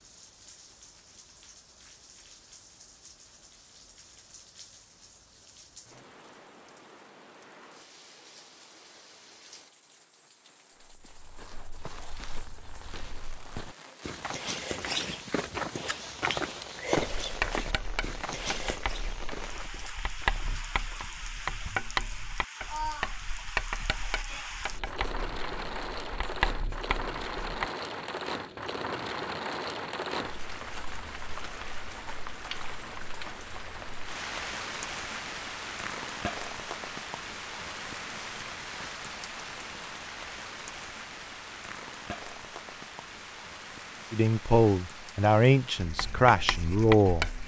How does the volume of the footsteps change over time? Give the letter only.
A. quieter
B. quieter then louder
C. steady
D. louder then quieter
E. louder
D.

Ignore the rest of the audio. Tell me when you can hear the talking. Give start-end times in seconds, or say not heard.
44.1-47.3.